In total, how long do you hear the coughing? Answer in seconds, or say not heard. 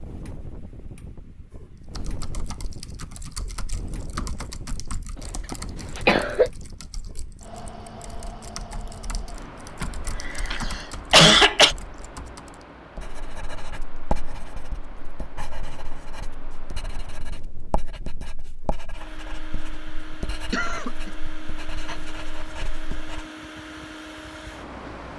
4 s.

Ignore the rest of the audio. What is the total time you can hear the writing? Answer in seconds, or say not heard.
10 s.